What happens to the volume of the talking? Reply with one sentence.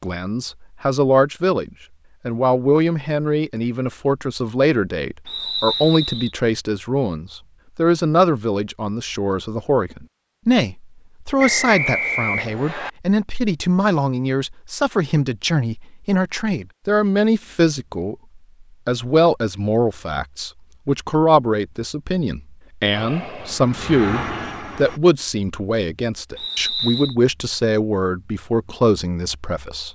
The loudness of the talking stays about the same.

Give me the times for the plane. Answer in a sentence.
The plane can be heard from 22.9 to 25.0 s.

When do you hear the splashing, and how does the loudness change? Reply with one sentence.
The splashing can't be heard in this clip.